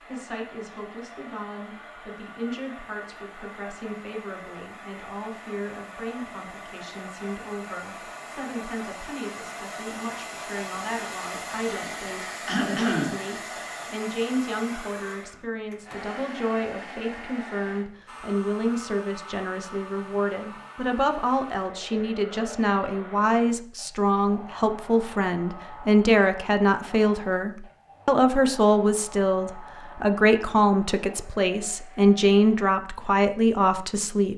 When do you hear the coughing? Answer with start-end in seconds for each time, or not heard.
12.4-13.2.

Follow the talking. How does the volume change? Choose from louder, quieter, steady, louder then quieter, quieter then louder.
louder.